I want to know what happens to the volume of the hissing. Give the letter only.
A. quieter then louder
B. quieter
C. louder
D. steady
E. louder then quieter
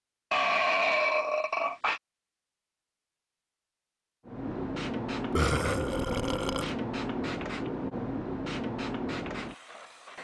D.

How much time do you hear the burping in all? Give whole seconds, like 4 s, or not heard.
3 s.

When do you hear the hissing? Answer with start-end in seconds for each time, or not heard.
4.2-10.1.